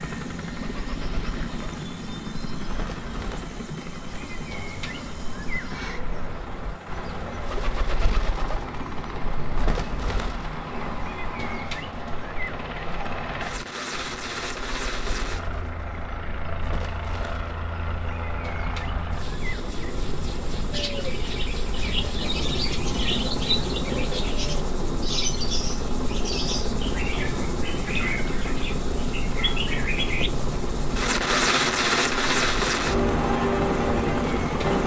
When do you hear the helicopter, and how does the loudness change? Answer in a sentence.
You can hear the helicopter from 0.0 to 34.8 s, getting louder.